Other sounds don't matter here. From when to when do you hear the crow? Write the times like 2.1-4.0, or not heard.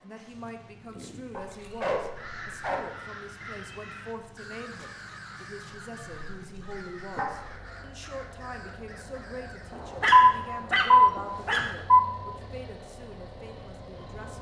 0.8-9.8.